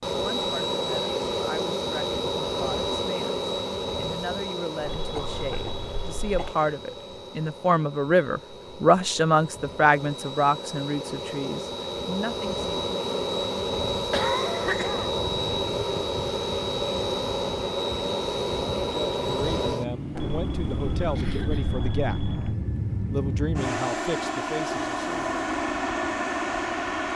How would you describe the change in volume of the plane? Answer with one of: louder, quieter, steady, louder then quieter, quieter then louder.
quieter then louder.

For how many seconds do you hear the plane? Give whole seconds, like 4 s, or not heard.
27 s.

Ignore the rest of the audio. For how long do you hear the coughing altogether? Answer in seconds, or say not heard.
3 s.